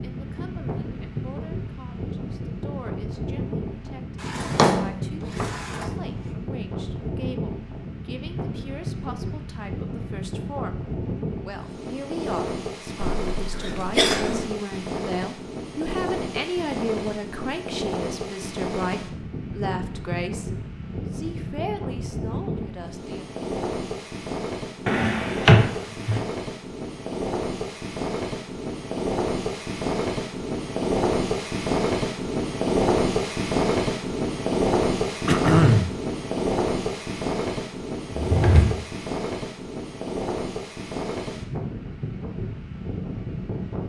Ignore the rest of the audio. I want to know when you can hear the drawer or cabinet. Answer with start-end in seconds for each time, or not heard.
4.2-5.8, 24.9-26.2, 38.1-38.8.